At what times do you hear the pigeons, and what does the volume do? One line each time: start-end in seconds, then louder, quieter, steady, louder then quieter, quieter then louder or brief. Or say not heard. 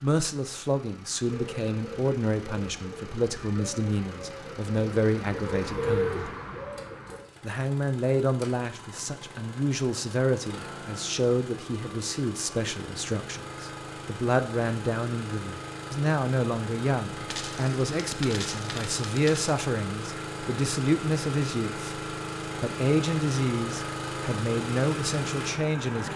1.2-7.2 louder.